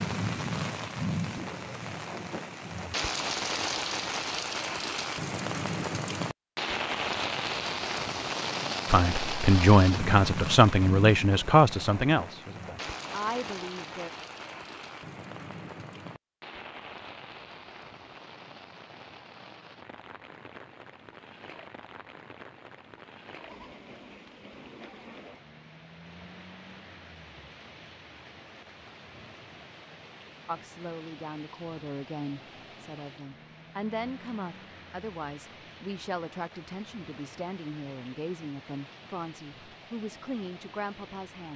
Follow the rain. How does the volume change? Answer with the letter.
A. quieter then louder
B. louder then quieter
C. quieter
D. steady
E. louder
C.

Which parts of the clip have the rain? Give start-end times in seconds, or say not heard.
0.0-41.5.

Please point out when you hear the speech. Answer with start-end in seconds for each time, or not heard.
8.8-14.1, 30.4-41.5.